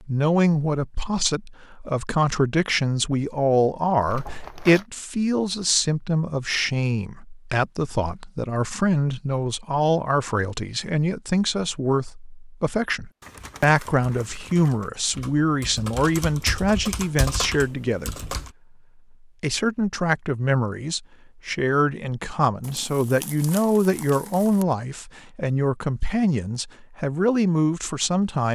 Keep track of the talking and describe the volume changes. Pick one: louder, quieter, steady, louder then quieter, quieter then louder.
steady.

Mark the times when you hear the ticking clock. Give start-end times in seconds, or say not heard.
not heard.